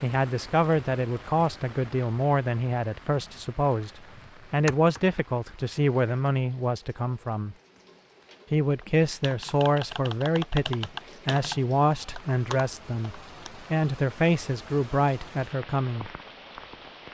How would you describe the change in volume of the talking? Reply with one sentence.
The loudness of the talking stays about the same.